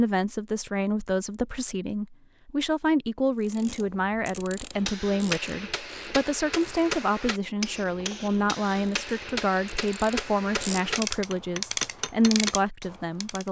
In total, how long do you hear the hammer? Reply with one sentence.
The hammer can be heard for 8 seconds in total.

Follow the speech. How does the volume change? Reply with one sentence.
The volume of the speech stays about the same.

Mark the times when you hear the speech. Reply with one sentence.
You can hear the speech from 0.0 to 13.4 s.